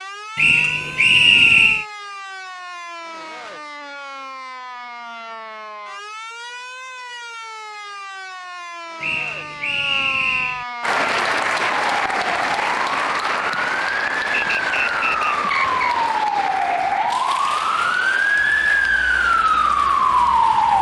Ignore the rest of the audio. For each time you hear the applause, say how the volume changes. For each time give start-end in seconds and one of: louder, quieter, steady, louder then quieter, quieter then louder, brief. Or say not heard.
10.8-20.7 quieter.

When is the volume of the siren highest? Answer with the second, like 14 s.
20 s.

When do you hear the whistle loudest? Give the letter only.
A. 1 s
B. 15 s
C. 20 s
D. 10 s
A.